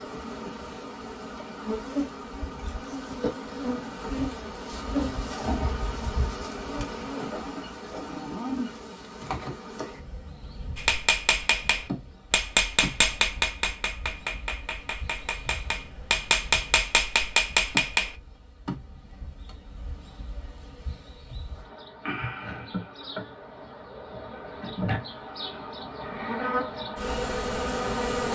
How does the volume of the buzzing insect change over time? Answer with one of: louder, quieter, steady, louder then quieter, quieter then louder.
quieter then louder.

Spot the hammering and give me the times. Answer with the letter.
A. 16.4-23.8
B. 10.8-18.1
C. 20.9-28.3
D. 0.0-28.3
B.